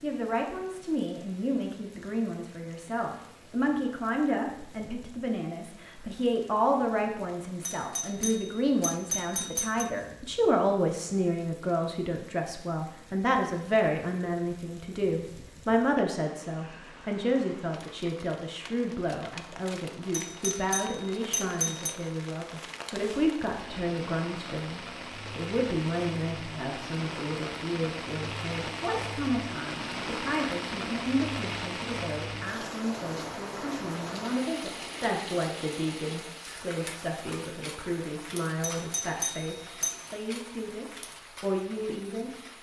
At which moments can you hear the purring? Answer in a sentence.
The purring can't be heard in this clip.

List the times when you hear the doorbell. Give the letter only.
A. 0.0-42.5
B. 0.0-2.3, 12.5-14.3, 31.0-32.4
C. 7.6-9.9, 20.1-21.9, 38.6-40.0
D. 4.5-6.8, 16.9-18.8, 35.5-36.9
C.